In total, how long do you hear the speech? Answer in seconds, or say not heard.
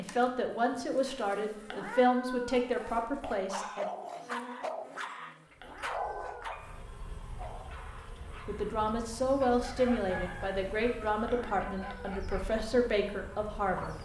9 s.